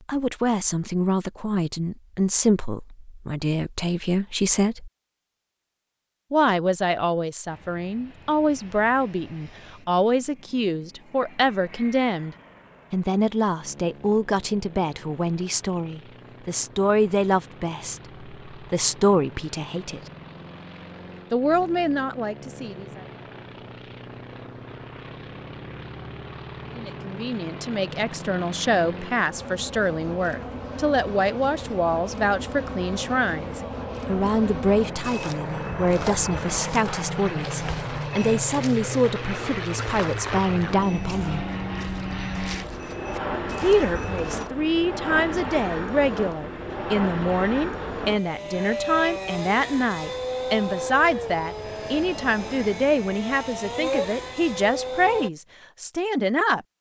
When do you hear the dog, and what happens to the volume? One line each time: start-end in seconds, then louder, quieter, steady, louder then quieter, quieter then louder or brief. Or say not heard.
not heard.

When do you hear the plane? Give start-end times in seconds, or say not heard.
7.5-55.3.